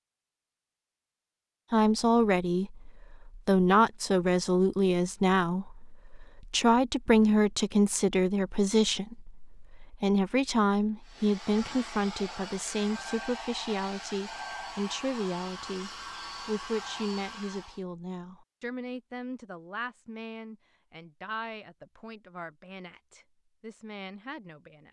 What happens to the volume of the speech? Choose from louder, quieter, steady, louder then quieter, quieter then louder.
quieter.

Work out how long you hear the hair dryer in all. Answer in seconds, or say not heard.
7 s.